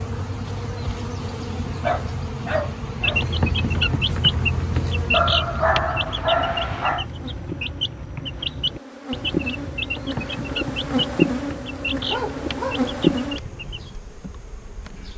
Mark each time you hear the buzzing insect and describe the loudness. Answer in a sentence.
The buzzing insect can be heard from 0.0 to 15.1 s, getting quieter then louder.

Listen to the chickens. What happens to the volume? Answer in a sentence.
The loudness of the chickens goes down.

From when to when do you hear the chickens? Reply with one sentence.
You can hear the chickens from 3.0 to 13.9 s.